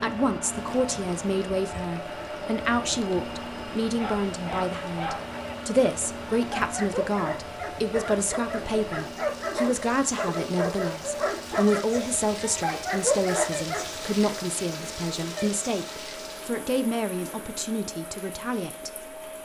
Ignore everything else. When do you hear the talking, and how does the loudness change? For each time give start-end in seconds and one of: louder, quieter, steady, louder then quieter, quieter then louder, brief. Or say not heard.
0.0-19.1 steady.